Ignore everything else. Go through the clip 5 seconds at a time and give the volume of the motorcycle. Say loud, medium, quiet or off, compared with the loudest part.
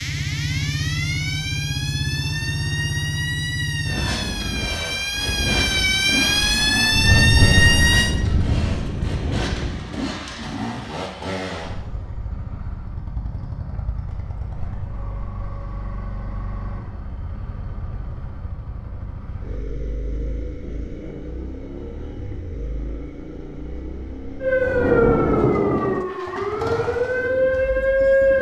loud, loud, medium, medium, medium, medium.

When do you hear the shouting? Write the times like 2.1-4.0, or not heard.
not heard.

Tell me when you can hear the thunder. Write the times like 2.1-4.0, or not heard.
6.2-9.8, 24.6-26.1.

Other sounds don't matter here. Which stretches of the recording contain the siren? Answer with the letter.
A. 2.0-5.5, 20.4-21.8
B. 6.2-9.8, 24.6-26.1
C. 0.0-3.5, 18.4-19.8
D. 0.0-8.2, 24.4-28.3
D.